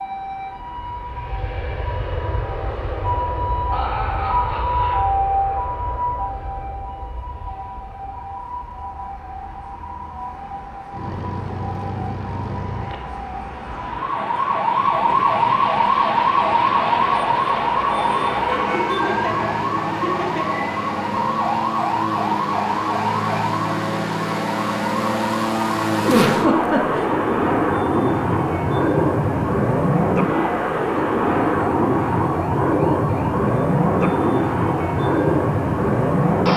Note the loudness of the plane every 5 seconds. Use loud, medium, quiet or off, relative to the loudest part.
quiet, quiet, quiet, medium, medium, loud, loud, loud.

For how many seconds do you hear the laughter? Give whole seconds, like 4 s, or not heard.
4 s.